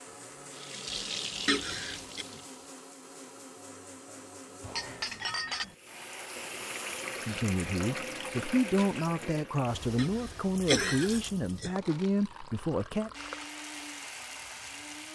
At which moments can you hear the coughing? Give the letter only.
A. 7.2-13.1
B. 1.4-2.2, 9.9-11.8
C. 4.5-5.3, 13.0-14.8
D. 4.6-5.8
B.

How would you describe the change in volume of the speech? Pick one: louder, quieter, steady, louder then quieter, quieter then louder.
steady.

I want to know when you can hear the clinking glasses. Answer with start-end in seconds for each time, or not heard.
4.6-5.8.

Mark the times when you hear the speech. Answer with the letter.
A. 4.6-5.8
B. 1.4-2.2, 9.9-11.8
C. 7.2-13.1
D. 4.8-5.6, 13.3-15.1
C.